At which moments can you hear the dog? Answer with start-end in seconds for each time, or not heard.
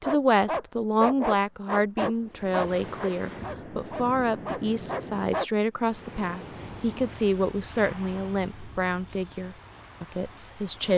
0.0-5.5.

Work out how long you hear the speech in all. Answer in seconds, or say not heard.
11 s.